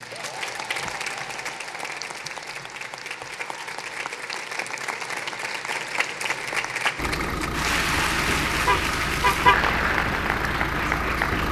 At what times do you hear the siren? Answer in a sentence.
The siren can't be heard in this clip.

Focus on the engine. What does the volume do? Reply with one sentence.
The volume of the engine stays about the same.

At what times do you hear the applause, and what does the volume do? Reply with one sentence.
You can hear the applause from 0.0 to 11.4 s, getting louder.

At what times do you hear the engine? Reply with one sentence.
You can hear the engine from 7.0 to 11.4 s.